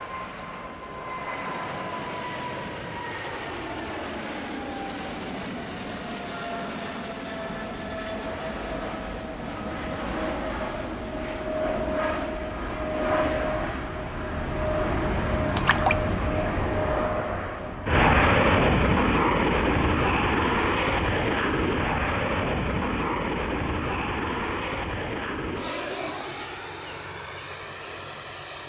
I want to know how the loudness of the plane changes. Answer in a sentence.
The volume of the plane goes up, then down.